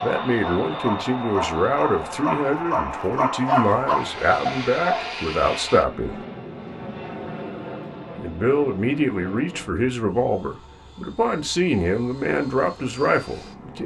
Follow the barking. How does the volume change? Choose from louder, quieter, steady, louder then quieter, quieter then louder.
louder.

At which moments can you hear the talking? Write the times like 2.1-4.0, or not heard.
0.0-6.2, 8.2-13.8.